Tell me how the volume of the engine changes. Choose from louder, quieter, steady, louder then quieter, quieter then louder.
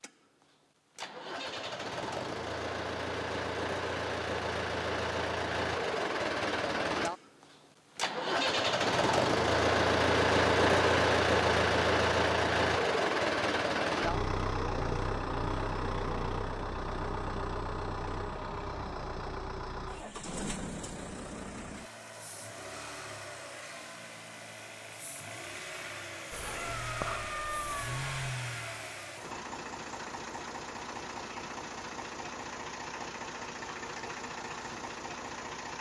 louder then quieter.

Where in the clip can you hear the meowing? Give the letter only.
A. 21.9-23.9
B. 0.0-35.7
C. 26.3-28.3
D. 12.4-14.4
C.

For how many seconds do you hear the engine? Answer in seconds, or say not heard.
36 s.